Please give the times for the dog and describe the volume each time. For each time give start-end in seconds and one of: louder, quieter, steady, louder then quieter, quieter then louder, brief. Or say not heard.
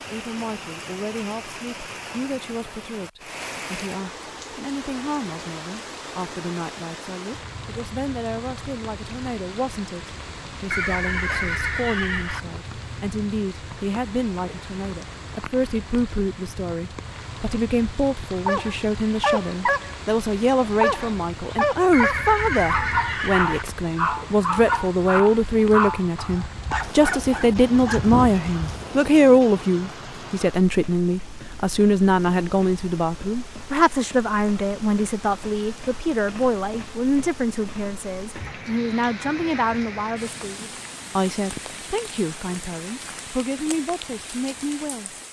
18.4-19.9 brief
20.8-28.9 steady.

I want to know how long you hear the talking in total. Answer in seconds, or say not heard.
45 s.